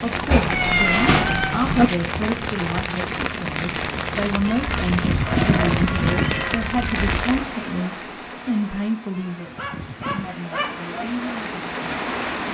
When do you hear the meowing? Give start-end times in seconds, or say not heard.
0.3-1.9, 4.5-6.5, 9.1-10.3.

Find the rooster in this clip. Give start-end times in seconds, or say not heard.
4.5-7.5.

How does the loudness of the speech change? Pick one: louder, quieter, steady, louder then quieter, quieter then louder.
quieter.